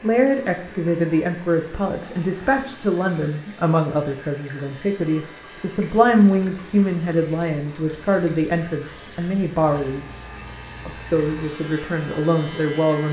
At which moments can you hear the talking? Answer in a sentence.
You can hear the talking from 0.0 to 10.2 s and from 10.8 to 13.0 s.